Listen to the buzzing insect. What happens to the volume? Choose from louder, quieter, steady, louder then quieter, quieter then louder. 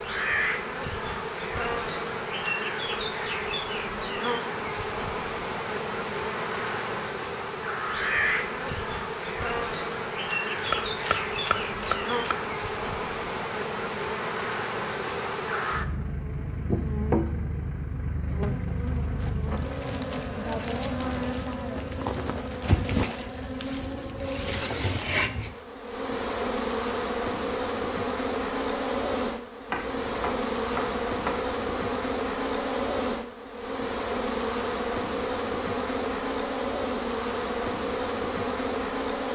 steady.